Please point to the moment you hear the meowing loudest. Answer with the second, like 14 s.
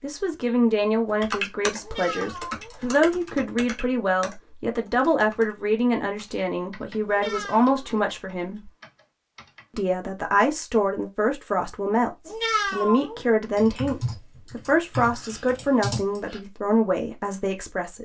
13 s.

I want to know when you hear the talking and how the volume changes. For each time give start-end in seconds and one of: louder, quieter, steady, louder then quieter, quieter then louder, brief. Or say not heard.
0.0-8.7 steady
9.8-17.9 steady.